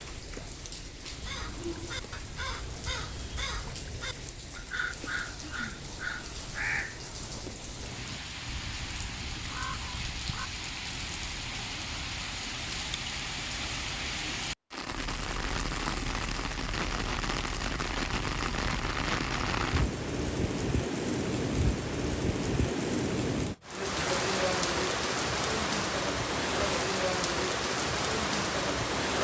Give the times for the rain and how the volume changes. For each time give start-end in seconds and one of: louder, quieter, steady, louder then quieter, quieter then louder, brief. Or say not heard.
0.0-29.2 louder.